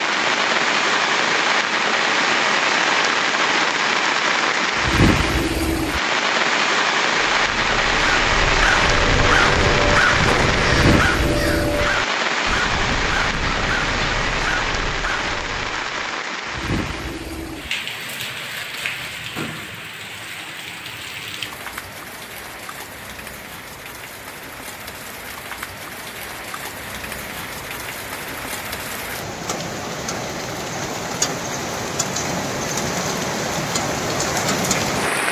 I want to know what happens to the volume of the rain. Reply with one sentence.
The volume of the rain goes down, then up.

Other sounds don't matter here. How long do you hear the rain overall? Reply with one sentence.
You can hear the rain for 35 seconds altogether.